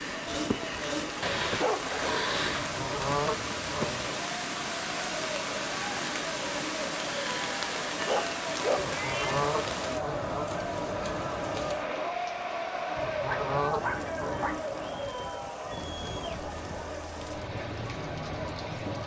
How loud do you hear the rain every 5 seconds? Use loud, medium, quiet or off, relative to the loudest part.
loud, loud, medium, medium.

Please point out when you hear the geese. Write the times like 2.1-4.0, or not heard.
2.5-4.2, 8.8-10.5, 12.9-14.6.